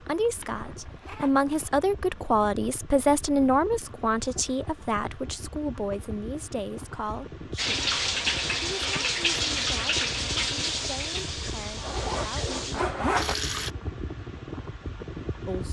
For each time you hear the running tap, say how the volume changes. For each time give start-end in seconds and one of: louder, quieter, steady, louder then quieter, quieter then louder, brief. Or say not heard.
7.5-13.7 quieter.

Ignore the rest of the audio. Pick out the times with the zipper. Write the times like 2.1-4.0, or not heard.
0.4-1.7, 11.6-13.3.